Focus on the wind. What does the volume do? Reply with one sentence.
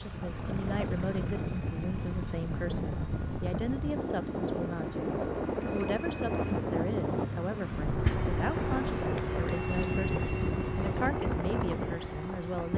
The volume of the wind stays about the same.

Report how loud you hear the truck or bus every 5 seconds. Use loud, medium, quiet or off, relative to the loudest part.
medium, loud, loud.